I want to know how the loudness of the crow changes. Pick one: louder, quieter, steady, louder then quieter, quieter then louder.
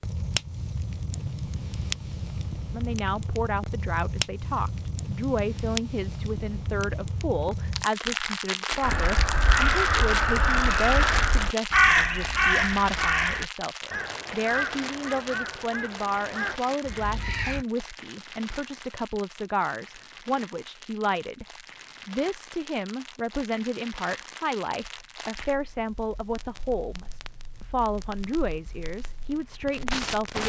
quieter.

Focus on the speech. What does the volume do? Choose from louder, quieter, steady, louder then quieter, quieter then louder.
steady.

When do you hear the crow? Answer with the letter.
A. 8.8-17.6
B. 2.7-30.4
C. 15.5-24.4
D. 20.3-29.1
A.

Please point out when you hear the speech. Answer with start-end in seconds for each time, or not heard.
2.7-30.4.